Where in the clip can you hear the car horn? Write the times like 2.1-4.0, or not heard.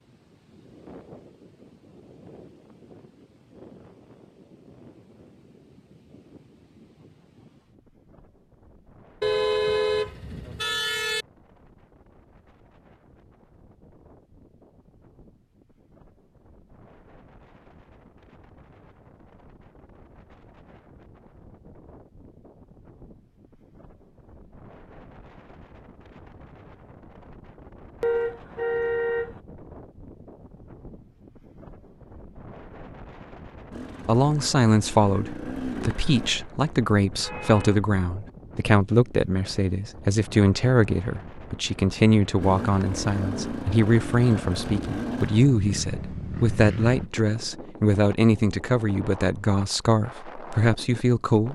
9.2-11.2, 28.0-29.4, 37.1-38.0.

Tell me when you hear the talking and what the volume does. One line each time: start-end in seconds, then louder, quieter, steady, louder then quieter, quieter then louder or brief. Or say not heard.
34.0-51.5 steady.